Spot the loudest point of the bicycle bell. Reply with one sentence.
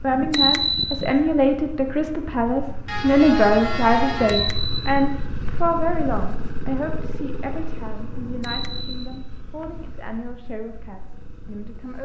The loudest moment of the bicycle bell is at 1 second.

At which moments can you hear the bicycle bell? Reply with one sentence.
The bicycle bell can be heard from 0.1 to 1.1 s, from 4.3 to 5.5 s and from 8.2 to 9.7 s.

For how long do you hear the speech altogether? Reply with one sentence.
You can hear the speech for 12 seconds altogether.